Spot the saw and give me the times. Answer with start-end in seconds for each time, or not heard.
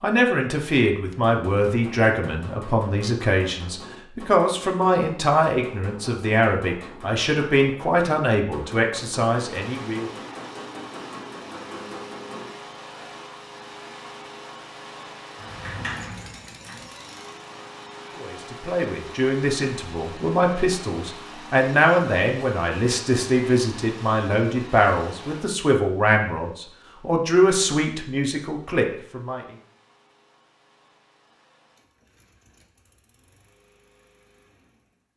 not heard.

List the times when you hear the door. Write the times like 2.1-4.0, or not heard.
15.3-16.9.